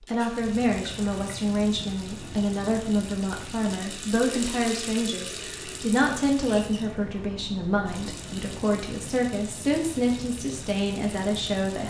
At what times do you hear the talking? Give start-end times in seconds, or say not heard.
0.1-11.8.